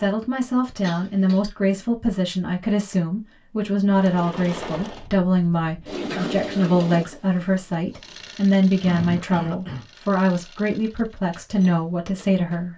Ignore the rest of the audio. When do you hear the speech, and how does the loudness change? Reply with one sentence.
You can hear the speech from 0.0 to 12.7 s, at a steady volume.